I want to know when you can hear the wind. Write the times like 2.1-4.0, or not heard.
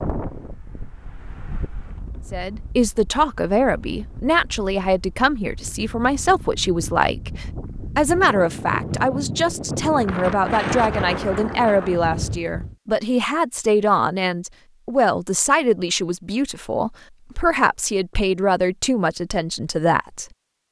0.0-12.8.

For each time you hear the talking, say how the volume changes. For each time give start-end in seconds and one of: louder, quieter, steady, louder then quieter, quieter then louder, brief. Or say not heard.
2.3-20.2 steady.